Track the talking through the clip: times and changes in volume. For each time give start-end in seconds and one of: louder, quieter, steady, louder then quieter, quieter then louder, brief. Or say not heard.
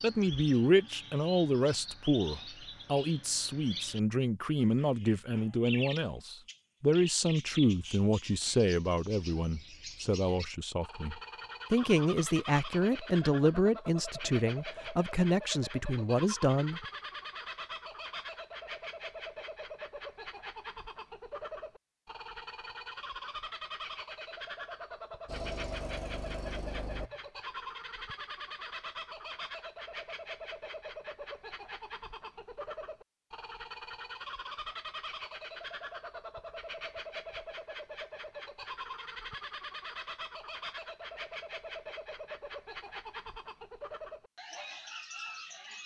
0.0-16.8 steady.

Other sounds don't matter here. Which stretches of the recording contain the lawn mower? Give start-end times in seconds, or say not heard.
25.2-27.2.